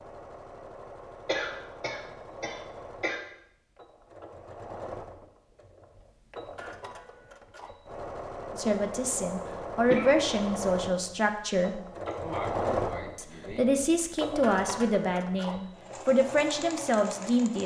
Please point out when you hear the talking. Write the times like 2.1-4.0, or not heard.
8.6-11.8, 13.2-17.6.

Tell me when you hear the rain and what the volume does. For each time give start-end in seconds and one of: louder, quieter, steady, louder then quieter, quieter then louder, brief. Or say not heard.
not heard.